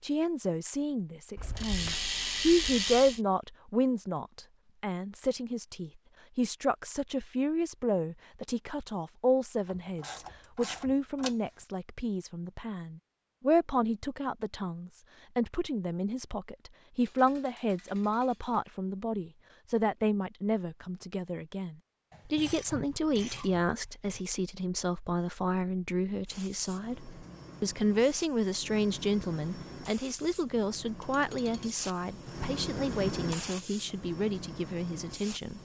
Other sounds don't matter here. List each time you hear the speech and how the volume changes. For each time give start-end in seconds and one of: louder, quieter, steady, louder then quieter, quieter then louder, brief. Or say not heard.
0.0-35.6 steady.